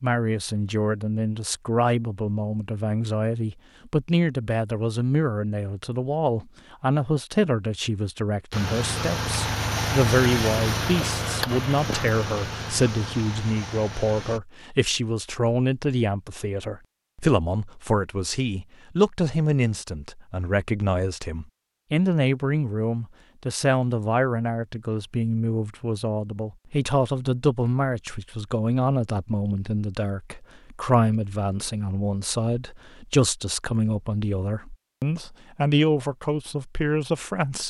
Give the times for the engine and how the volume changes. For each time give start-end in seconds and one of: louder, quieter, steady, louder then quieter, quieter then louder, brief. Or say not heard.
8.5-14.4 quieter.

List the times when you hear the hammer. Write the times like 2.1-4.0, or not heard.
not heard.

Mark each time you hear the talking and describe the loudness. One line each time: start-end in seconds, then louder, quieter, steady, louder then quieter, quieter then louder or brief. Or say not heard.
0.0-37.6 steady.